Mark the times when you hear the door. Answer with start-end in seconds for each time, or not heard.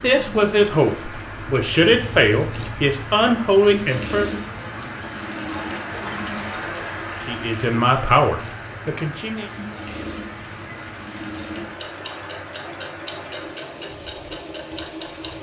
not heard.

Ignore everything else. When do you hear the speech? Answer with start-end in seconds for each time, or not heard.
0.0-4.3, 7.2-9.5.